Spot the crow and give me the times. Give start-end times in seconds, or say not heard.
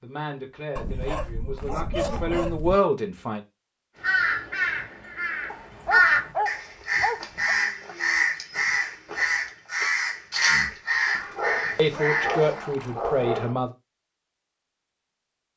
4.0-12.6.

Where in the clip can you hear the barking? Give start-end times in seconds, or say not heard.
0.8-2.8, 5.5-7.5, 11.2-13.6.